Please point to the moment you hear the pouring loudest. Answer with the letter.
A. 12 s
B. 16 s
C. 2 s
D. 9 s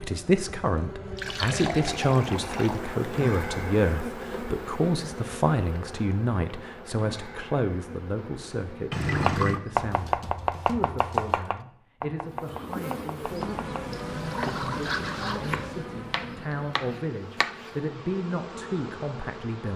D.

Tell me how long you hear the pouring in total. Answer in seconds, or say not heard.
4 s.